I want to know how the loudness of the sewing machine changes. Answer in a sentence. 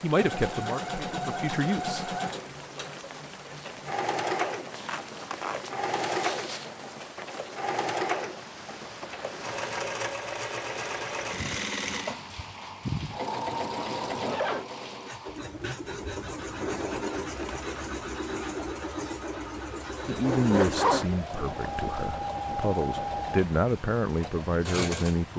The loudness of the sewing machine stays about the same.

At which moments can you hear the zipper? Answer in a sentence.
You can hear the zipper from 4.7 to 6.8 s, from 13.3 to 14.7 s and from 20.2 to 21.1 s.